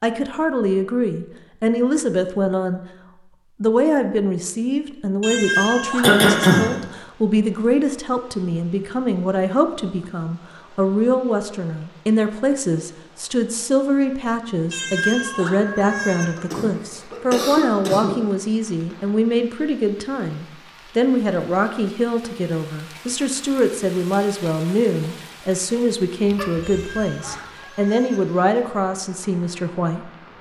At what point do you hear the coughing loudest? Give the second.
6 s.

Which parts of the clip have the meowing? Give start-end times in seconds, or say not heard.
5.2-6.8, 14.7-16.3, 26.6-28.2.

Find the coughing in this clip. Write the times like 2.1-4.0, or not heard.
6.0-6.7, 16.4-18.1, 26.3-27.4.